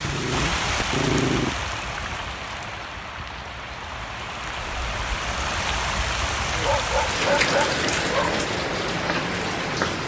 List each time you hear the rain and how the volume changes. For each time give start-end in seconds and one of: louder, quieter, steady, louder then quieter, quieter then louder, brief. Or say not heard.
0.0-10.0 quieter then louder.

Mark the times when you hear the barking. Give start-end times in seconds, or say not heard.
0.0-1.6, 6.5-8.3.